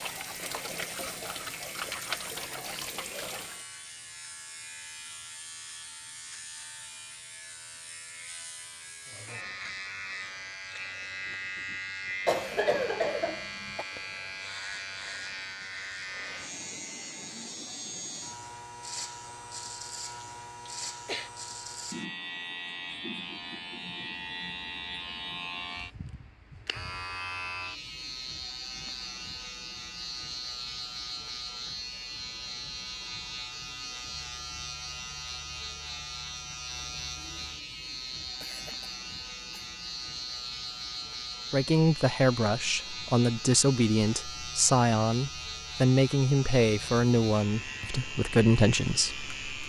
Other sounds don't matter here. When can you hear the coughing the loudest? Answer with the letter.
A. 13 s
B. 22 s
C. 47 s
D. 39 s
A.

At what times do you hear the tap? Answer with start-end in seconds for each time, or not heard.
0.0-3.6.